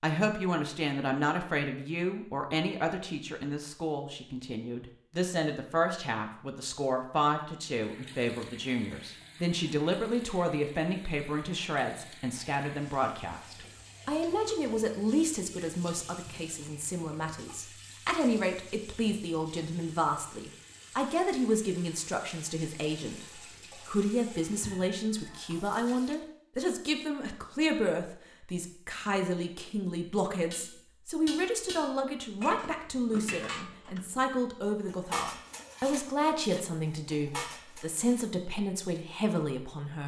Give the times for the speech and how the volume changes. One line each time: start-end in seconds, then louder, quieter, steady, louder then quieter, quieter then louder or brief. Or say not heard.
0.0-40.0 steady.